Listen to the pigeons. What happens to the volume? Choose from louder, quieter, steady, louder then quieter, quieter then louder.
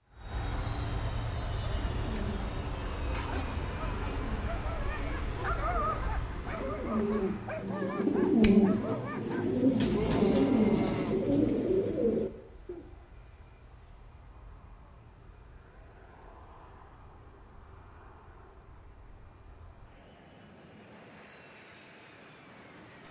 louder.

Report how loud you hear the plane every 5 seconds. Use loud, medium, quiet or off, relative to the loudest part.
loud, loud, quiet, quiet, quiet.